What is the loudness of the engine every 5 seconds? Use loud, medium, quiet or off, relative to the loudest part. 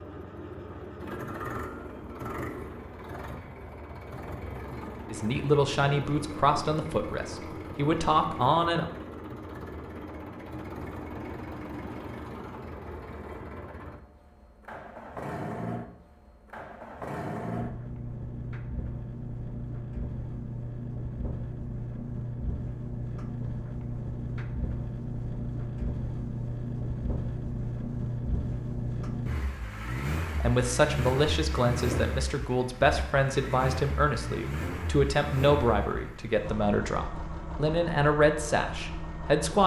medium, medium, medium, loud, loud, loud, loud, medium.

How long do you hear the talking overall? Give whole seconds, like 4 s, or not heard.
13 s.